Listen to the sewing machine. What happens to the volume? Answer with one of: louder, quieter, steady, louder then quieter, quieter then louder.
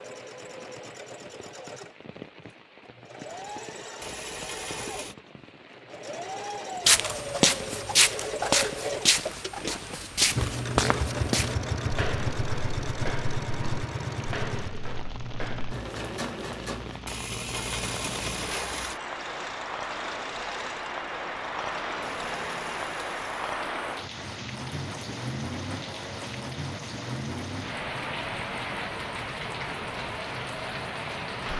louder then quieter.